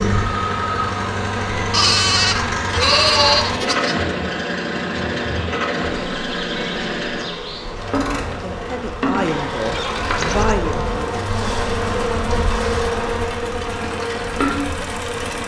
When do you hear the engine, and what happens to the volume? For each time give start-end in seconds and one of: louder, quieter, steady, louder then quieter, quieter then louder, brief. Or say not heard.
0.0-15.4 quieter.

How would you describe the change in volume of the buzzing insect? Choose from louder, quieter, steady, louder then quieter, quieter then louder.
louder.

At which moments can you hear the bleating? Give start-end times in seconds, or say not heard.
1.7-4.0, 9.2-10.6.